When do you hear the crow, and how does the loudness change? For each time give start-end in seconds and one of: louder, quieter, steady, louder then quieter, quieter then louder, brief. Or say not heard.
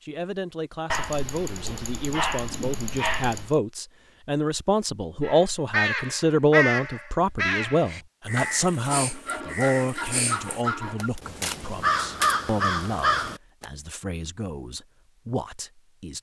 5.2-13.7 quieter then louder.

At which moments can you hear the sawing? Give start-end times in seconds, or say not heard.
8.3-11.1.